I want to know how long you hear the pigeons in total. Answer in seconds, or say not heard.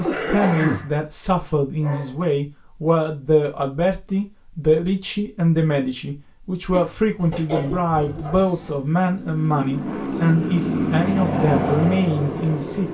not heard.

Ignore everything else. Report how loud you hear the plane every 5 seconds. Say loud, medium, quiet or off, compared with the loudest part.
off, medium, loud.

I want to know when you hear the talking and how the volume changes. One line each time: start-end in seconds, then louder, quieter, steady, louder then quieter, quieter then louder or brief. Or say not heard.
0.0-12.8 steady.